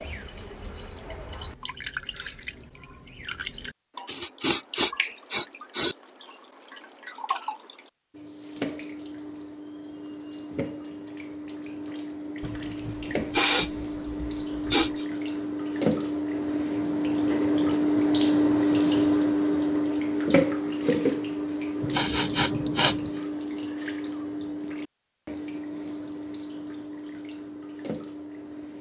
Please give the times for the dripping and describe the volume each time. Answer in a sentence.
You can hear the dripping from 0.0 to 28.7 s, getting louder then quieter.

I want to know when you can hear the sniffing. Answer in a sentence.
The sniffing can be heard from 4.0 to 6.0 s, from 12.4 to 15.1 s and from 21.8 to 23.1 s.